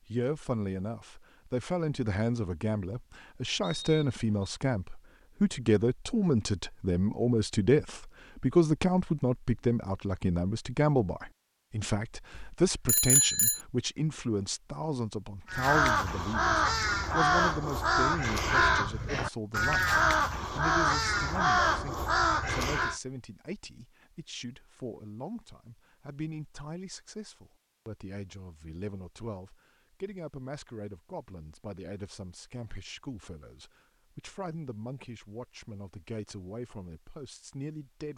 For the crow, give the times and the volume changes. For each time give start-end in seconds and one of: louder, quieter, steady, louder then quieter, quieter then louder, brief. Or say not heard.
15.4-23.0 steady.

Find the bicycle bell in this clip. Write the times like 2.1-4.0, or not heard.
12.3-13.6.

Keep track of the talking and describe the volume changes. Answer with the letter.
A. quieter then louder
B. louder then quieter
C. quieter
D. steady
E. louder
C.